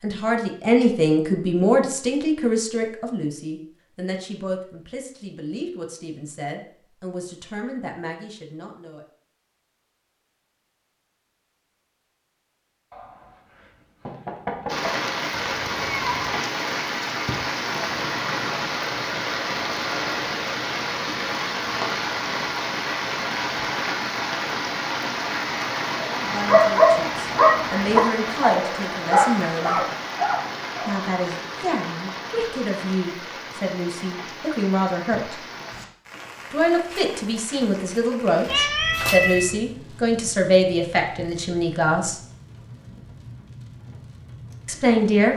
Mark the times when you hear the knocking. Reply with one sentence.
You can hear the knocking from 12.9 to 14.9 s.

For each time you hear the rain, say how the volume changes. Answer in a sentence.
You can hear the rain from 14.7 to 45.3 s, getting quieter.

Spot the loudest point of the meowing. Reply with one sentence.
The volume of the meowing peaks at 39 seconds.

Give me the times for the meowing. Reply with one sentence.
The meowing can be heard from 15.3 to 16.4 s and from 38.5 to 39.6 s.